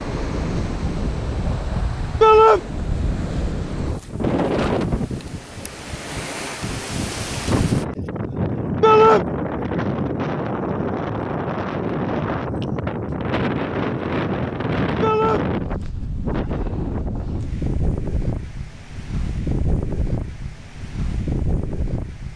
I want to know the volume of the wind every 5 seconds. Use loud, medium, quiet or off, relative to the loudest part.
loud, loud, loud, loud, medium.